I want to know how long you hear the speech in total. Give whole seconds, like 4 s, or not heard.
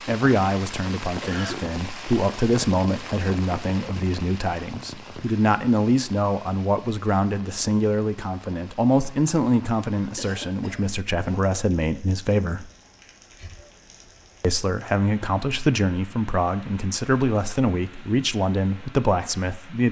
18 s.